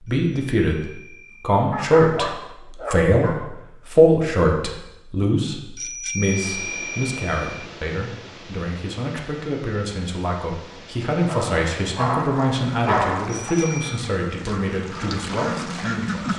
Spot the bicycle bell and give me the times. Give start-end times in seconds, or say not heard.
0.2-1.4, 5.8-7.7, 13.2-14.0.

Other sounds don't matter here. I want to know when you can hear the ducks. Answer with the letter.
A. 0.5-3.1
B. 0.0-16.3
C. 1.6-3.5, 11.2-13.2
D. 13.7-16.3
D.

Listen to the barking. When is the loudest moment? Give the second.
13 s.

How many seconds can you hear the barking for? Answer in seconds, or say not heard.
4 s.